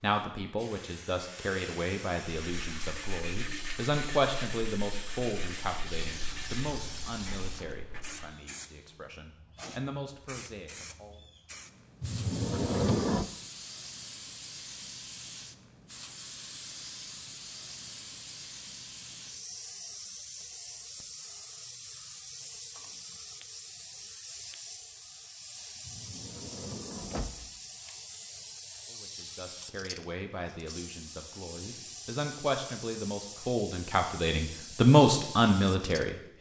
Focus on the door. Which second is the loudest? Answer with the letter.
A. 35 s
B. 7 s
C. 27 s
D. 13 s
D.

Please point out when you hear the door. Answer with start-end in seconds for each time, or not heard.
12.0-13.3, 25.9-27.6.